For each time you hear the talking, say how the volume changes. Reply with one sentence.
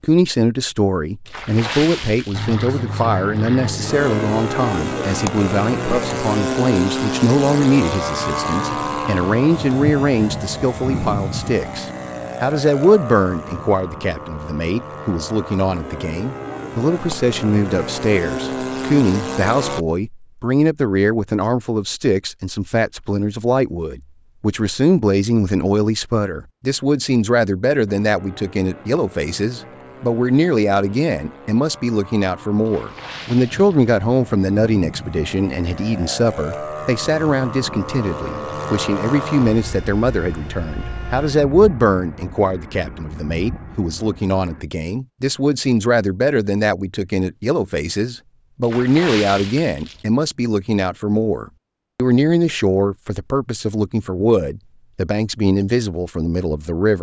The talking can be heard from 0.0 to 56.9 s, at a steady volume.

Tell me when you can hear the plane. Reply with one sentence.
You can hear the plane from 2.3 to 19.9 s and from 27.9 to 44.6 s.